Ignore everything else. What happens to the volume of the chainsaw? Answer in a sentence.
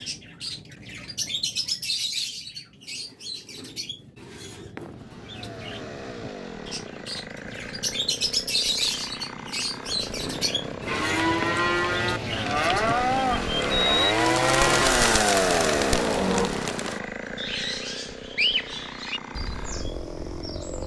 The loudness of the chainsaw goes up, then down.